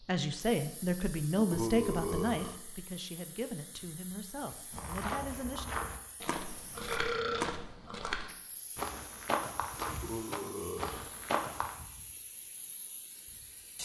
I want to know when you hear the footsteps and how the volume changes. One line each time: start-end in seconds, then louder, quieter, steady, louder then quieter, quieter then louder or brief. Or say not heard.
4.7-11.8 steady.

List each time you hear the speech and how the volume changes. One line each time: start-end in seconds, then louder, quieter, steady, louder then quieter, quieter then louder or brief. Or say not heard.
0.0-5.7 quieter.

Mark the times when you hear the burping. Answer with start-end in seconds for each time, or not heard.
1.4-2.6, 6.8-7.7, 9.8-11.1.